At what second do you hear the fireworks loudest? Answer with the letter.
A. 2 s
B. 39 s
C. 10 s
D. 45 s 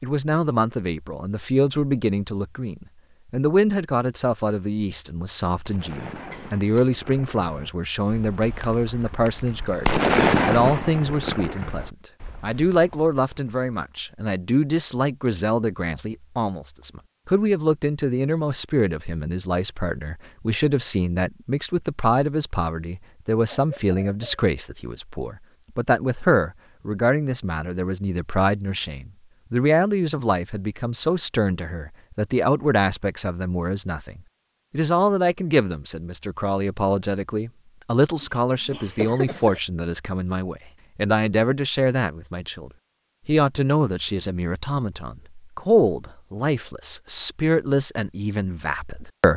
C.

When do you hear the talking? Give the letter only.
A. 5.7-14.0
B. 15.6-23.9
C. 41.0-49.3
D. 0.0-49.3
D.